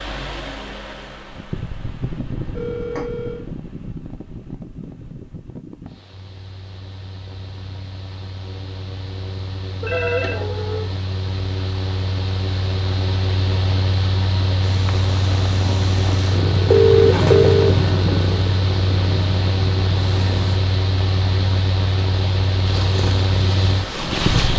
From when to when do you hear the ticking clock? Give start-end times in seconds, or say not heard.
not heard.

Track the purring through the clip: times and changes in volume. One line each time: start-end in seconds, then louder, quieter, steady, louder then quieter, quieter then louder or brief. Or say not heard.
14.6-20.6 louder then quieter
22.6-24.5 brief.